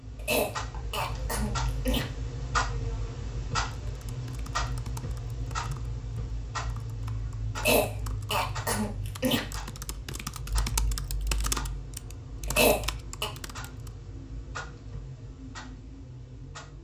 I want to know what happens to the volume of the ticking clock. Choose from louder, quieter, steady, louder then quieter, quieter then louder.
quieter.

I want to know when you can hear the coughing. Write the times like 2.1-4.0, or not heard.
0.1-2.0, 7.5-9.4, 12.4-13.3.